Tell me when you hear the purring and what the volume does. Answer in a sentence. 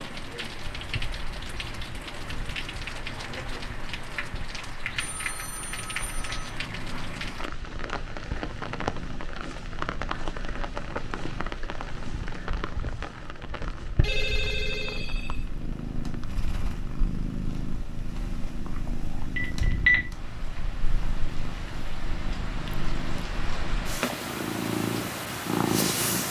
You can hear the purring from 0.0 to 26.2 s, getting louder.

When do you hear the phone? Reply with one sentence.
You can hear the phone from 5.0 to 6.5 s, from 14.0 to 15.4 s and from 19.4 to 19.9 s.